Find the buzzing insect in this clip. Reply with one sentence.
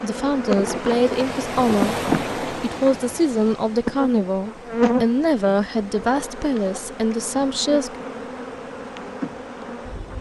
The buzzing insect can be heard from 0.0 to 10.1 s.